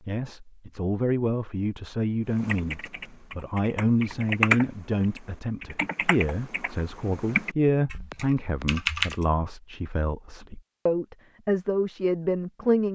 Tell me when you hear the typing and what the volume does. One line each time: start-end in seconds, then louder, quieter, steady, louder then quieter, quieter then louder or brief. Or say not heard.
2.4-9.2 louder then quieter.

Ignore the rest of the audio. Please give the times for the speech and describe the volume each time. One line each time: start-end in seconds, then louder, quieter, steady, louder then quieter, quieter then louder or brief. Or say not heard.
0.1-12.9 steady.